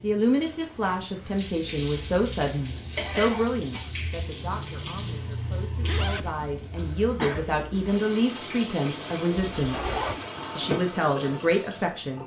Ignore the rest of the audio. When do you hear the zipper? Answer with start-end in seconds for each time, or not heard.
0.6-1.4, 5.8-6.3, 9.6-10.2.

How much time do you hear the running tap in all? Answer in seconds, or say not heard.
12 s.